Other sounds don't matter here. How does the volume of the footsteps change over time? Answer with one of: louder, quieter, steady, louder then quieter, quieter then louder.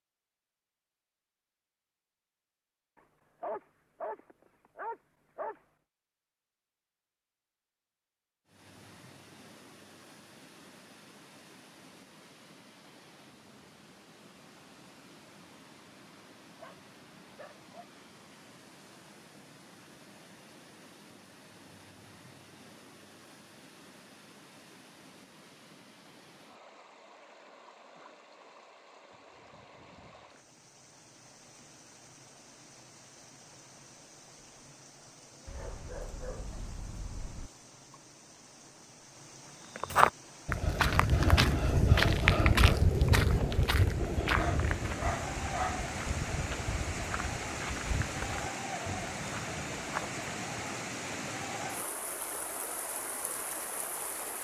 quieter.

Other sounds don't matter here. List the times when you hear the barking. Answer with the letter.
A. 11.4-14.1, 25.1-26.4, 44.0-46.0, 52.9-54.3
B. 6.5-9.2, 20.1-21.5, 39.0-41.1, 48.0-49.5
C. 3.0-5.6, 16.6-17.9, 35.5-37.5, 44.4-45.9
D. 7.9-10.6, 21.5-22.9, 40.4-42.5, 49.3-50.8
C.